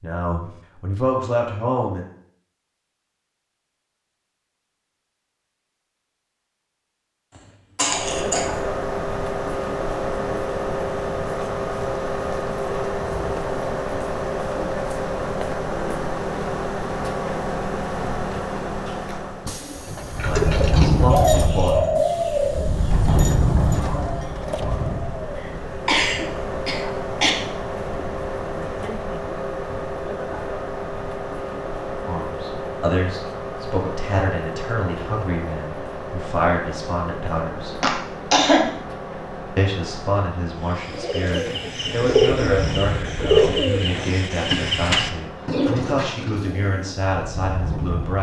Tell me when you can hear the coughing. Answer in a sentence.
The coughing can be heard from 7.8 to 8.4 s, from 25.4 to 27.3 s and from 37.8 to 38.6 s.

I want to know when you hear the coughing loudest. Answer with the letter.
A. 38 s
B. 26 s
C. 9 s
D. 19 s
A.